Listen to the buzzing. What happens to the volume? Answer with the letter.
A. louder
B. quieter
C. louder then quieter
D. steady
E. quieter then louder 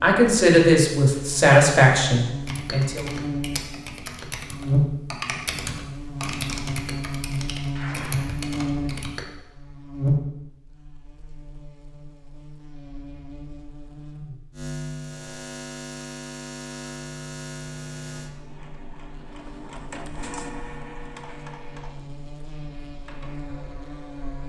B.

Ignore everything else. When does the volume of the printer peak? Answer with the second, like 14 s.
20 s.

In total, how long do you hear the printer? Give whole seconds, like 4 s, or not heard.
6 s.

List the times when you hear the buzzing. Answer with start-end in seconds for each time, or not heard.
0.0-24.4.